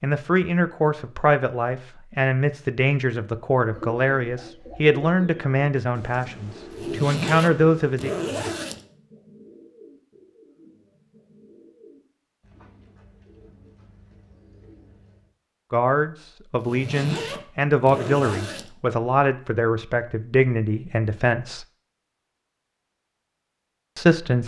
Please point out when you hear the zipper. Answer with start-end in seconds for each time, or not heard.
6.7-8.8, 16.6-18.7.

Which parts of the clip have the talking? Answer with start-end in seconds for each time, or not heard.
0.0-8.1, 15.7-21.6, 23.9-24.4.